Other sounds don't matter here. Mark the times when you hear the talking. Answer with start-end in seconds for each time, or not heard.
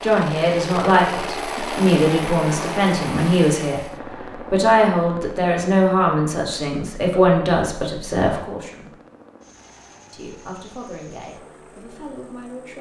0.0-3.9, 4.5-8.9, 10.1-12.7.